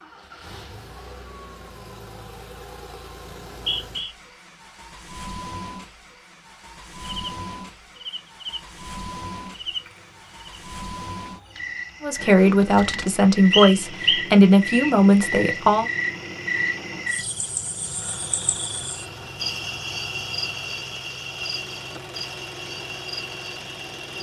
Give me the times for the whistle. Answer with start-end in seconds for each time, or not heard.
3.2-4.1, 13.5-14.9.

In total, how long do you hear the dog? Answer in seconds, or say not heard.
not heard.